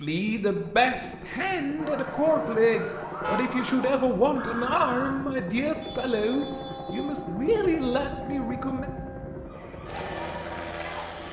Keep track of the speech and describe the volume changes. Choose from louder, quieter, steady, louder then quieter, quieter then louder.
steady.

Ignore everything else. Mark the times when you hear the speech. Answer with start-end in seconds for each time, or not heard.
0.0-8.8.